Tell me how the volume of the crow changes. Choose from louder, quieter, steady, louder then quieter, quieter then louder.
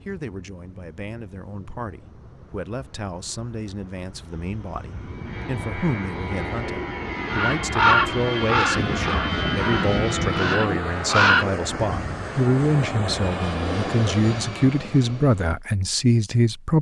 quieter then louder.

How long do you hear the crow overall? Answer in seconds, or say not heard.
5 s.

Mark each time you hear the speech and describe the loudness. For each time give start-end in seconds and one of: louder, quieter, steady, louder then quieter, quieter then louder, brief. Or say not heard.
0.0-16.7 louder.